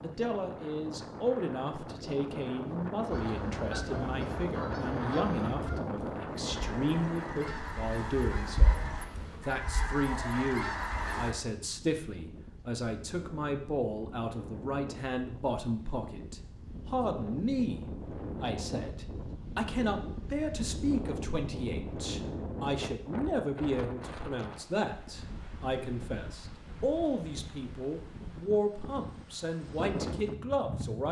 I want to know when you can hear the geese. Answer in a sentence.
The geese can be heard from 3.1 to 11.3 s.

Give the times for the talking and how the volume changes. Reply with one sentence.
The talking can be heard from 0.0 to 31.0 s, at a steady volume.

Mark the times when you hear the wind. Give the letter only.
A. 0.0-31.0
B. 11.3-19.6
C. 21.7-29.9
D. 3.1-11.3
A.